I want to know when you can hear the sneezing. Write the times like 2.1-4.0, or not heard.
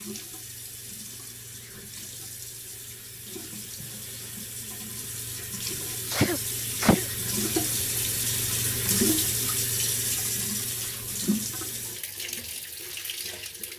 6.1-7.0.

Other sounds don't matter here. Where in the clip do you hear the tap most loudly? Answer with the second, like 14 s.
9 s.